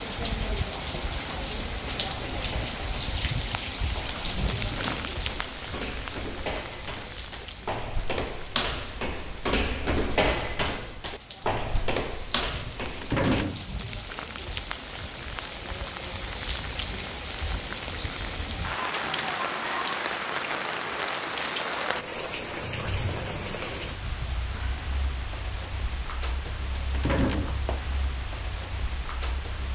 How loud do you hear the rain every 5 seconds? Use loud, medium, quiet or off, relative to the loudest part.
loud, medium, medium, loud, loud, medium.